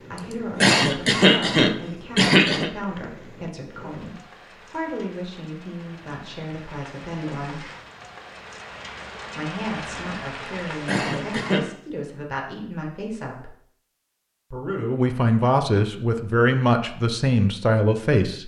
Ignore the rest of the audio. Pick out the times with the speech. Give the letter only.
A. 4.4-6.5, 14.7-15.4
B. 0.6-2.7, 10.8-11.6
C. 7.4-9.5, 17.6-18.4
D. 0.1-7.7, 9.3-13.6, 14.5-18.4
D.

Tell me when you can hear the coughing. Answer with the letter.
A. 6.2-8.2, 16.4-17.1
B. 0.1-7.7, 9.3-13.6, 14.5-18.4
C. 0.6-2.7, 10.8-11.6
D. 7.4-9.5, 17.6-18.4
C.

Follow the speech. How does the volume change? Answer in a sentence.
The volume of the speech goes up.